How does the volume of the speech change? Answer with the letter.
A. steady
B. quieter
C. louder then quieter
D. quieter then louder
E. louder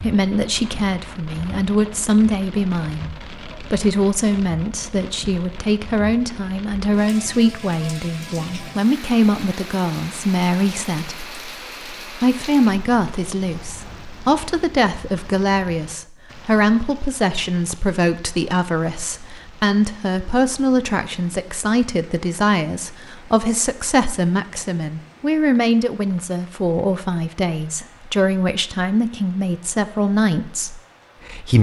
A.